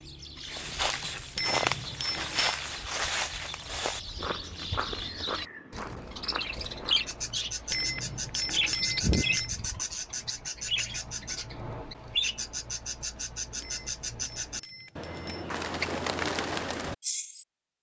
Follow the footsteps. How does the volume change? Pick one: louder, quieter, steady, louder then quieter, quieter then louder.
quieter.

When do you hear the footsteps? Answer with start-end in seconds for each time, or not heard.
0.5-7.5.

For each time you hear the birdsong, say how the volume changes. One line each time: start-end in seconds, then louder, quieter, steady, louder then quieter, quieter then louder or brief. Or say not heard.
0.0-17.4 louder.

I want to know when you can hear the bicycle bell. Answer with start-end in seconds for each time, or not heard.
1.4-2.6, 7.7-9.5, 13.6-15.5.